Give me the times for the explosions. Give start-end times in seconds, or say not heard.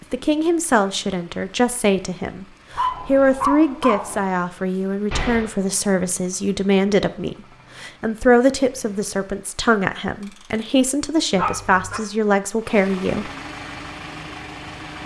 5.1-5.5.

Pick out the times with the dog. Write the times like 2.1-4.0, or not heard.
2.7-4.2, 11.3-12.0.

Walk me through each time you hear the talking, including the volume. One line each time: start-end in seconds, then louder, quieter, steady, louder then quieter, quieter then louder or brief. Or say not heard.
0.1-13.3 steady.